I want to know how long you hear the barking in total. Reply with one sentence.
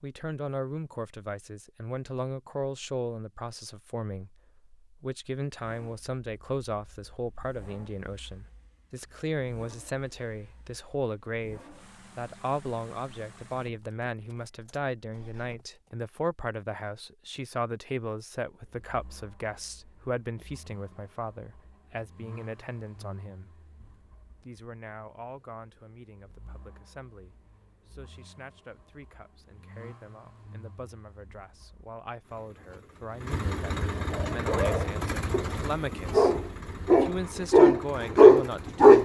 The barking can be heard for 5 seconds in total.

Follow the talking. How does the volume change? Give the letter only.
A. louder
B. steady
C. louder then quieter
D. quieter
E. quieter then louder
E.